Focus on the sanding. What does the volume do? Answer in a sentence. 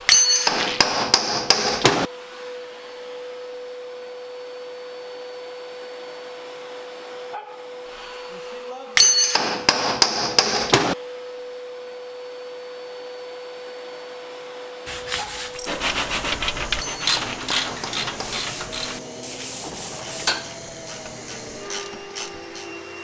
The loudness of the sanding goes down.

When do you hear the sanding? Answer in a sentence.
The sanding can be heard from 14.8 to 20.4 s.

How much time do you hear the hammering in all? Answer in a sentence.
The hammering can be heard for 6 seconds in total.